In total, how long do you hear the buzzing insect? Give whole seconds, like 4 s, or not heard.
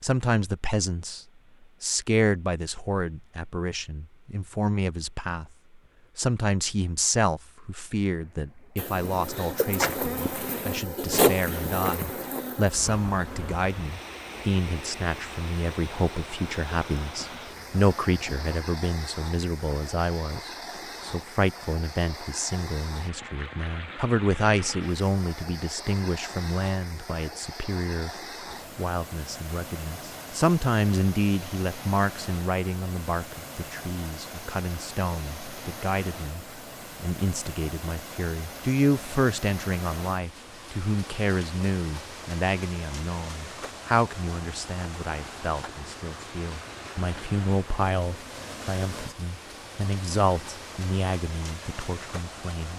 10 s.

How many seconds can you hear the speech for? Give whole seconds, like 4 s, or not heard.
51 s.